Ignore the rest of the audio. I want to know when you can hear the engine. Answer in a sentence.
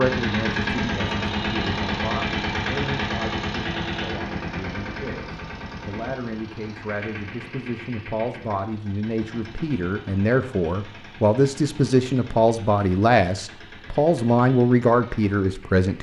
The engine can be heard from 0.0 to 15.9 s.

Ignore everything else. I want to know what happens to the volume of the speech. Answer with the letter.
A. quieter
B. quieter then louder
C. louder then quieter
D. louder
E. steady
D.